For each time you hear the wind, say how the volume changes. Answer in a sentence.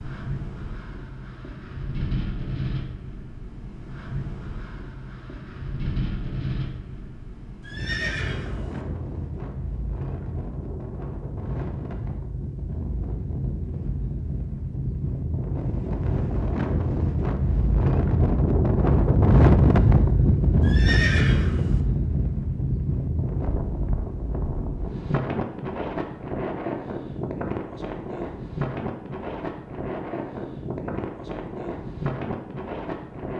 You can hear the wind from 0.0 to 33.3 s, getting louder then quieter.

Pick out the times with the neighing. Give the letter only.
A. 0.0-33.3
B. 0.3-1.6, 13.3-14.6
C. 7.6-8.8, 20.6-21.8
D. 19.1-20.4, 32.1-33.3
C.